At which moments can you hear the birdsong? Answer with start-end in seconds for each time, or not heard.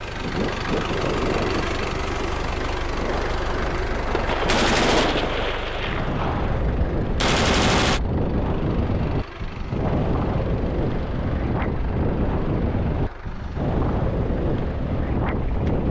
not heard.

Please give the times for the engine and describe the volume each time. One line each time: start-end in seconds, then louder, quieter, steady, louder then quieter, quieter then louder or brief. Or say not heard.
0.0-15.8 quieter.